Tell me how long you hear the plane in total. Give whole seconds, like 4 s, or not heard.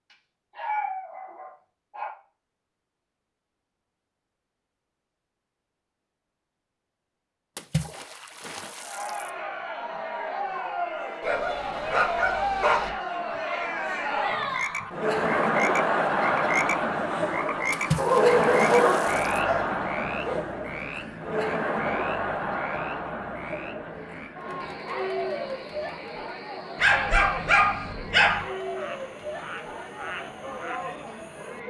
not heard.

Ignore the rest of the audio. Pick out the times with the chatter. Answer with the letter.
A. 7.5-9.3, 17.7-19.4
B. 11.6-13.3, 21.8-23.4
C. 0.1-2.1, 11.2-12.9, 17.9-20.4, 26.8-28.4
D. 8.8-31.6
D.